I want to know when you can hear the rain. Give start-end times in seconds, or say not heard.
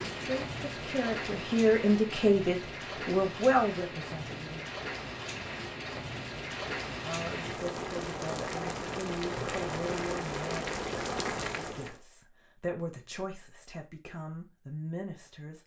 0.0-12.0.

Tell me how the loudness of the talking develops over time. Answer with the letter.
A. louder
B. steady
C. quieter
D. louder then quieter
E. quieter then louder
C.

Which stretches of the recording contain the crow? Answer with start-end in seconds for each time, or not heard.
not heard.